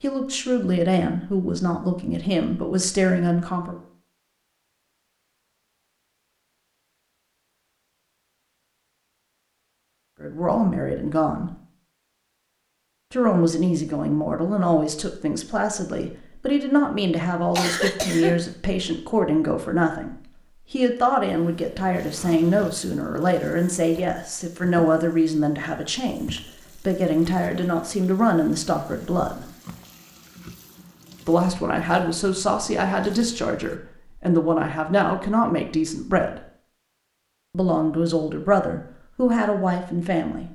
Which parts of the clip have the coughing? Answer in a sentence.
The coughing can be heard from 17.5 to 18.4 s.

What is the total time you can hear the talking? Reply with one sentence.
The talking can be heard for 30 seconds in total.